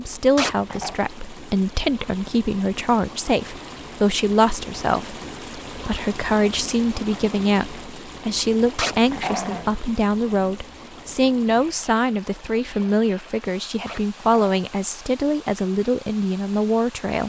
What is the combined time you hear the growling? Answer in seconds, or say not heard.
2 s.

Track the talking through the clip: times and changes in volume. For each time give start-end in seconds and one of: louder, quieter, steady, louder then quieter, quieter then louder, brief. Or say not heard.
0.0-17.2 steady.